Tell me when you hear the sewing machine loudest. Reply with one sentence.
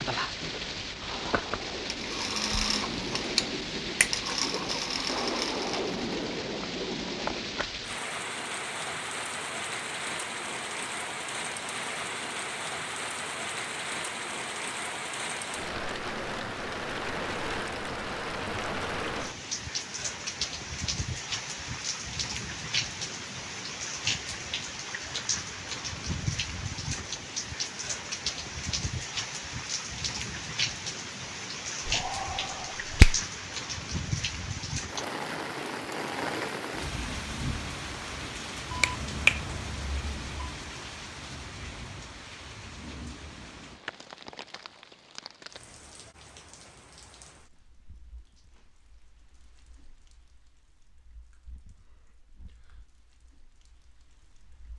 The volume of the sewing machine peaks at 3 seconds.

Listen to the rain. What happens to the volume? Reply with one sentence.
The volume of the rain goes down.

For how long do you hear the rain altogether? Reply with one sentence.
You can hear the rain for 55 seconds altogether.